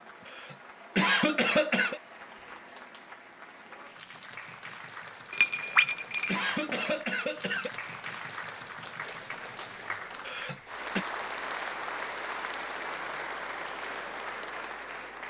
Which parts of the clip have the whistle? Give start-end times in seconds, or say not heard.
not heard.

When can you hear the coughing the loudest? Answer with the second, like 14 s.
1 s.